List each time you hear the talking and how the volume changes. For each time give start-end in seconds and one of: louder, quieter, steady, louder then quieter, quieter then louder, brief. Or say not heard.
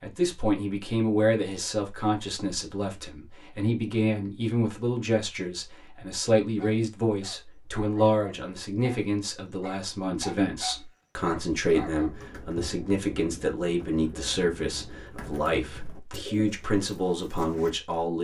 0.0-18.1 steady.